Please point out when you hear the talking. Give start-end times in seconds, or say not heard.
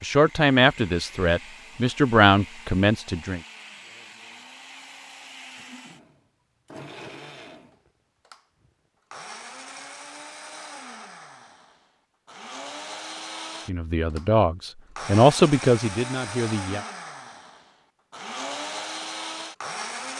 0.0-3.4, 13.7-16.9.